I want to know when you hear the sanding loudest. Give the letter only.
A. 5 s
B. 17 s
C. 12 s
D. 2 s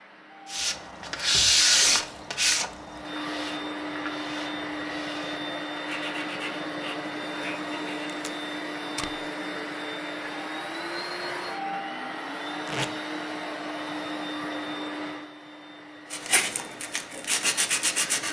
D.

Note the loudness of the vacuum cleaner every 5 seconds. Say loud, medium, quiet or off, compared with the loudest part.
loud, loud, loud, medium.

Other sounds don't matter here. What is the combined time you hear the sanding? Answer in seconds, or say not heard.
10 s.